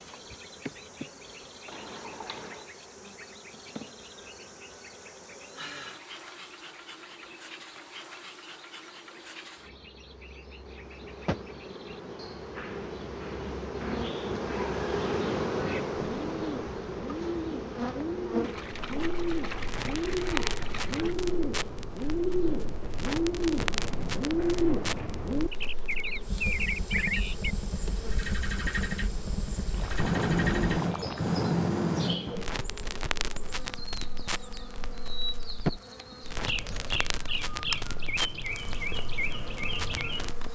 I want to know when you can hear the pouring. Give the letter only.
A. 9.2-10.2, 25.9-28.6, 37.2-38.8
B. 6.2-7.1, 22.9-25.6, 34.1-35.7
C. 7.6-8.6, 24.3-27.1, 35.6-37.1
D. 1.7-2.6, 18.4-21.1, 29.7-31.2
D.